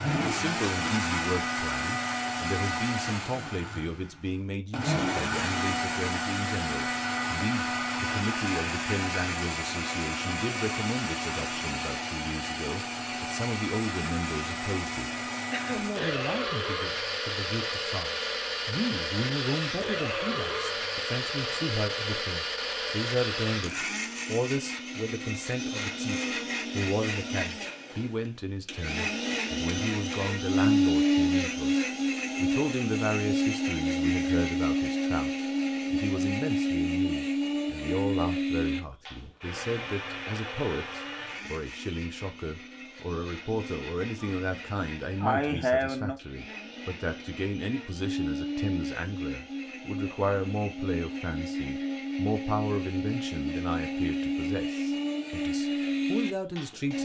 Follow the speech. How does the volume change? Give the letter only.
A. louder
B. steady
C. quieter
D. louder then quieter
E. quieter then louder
B.